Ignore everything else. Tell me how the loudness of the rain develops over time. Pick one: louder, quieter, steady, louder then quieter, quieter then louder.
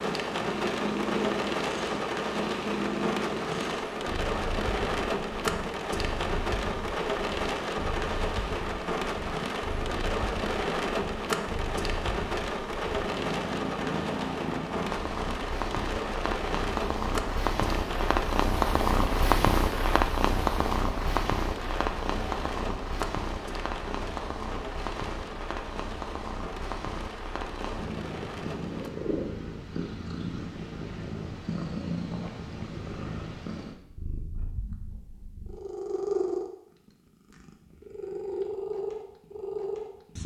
quieter.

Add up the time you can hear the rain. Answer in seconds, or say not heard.
29 s.